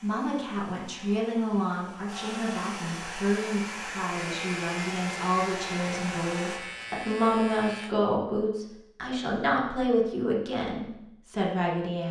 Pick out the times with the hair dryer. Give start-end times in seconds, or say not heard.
0.0-6.6.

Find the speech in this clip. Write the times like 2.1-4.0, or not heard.
0.0-12.0.